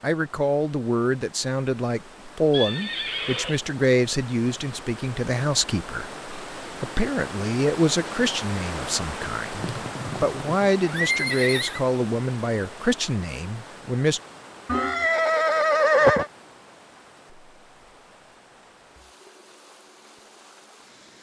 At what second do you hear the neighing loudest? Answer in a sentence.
The volume of the neighing peaks at 16 seconds.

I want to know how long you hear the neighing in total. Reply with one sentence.
You can hear the neighing for 5 seconds altogether.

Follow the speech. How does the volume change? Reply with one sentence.
The volume of the speech stays about the same.